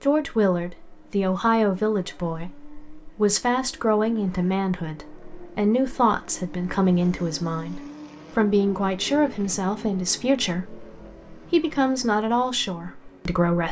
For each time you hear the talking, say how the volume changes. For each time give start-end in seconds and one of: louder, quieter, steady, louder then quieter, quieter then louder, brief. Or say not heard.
0.0-13.6 steady.